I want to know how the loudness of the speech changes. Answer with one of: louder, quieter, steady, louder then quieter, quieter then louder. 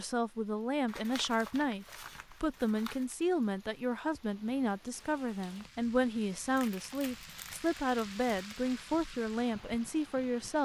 steady.